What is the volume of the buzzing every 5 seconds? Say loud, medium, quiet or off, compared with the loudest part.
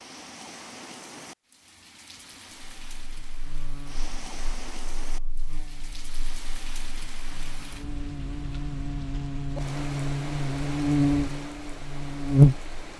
quiet, quiet, loud.